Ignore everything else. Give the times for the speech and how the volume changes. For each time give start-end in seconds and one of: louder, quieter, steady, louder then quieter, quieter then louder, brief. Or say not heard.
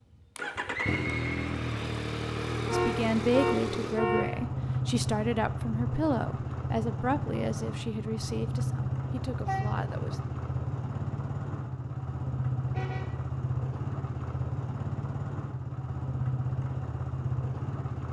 2.7-10.2 quieter.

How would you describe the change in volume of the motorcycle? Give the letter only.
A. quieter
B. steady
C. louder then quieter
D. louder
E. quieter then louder
B.